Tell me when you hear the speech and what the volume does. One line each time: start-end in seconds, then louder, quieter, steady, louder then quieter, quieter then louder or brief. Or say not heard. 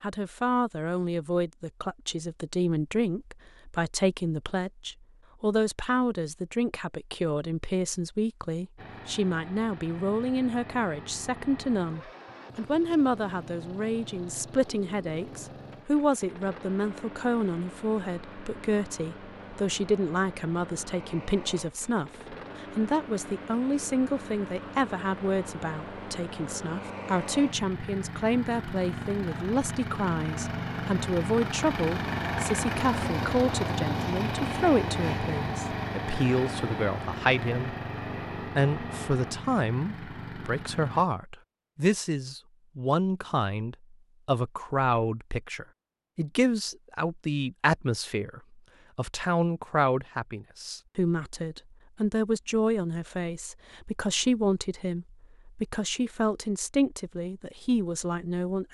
0.0-37.8 steady
38.4-58.7 steady.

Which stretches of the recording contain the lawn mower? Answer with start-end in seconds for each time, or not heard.
8.8-41.0.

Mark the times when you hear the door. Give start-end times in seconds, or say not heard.
not heard.